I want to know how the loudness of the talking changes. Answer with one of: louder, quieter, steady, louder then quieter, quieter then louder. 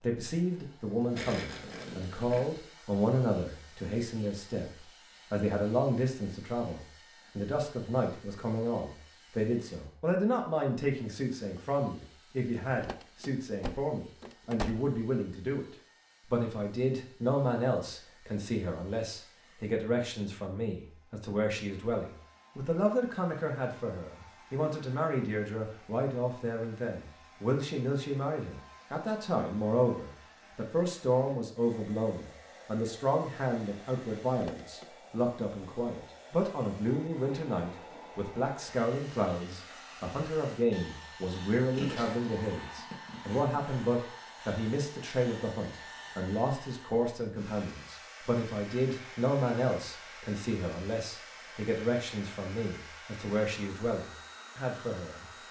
steady.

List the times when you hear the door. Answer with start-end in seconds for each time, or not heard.
12.8-14.9, 34.4-34.9.